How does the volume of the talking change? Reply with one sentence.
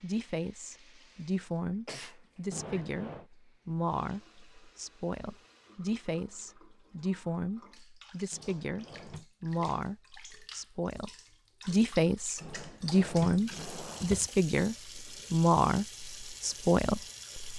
The loudness of the talking goes up.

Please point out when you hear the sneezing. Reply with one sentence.
You can hear the sneezing from 1.9 to 2.9 s.